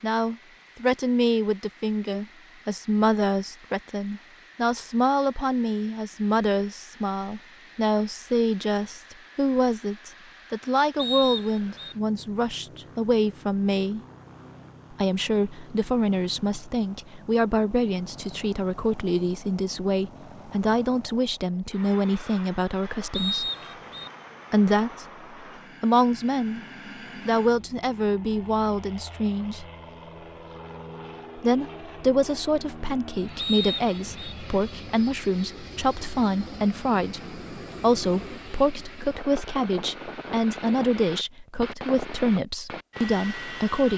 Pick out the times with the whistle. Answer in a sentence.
You can hear the whistle from 10.9 to 11.9 s, from 23.1 to 24.1 s and from 33.4 to 34.4 s.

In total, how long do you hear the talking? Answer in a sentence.
You can hear the talking for 39 seconds altogether.